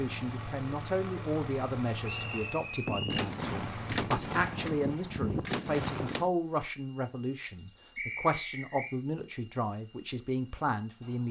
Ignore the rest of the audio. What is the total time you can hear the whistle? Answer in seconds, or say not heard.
2 s.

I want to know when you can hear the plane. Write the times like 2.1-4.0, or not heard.
0.0-4.1.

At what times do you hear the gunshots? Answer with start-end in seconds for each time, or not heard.
2.9-6.3.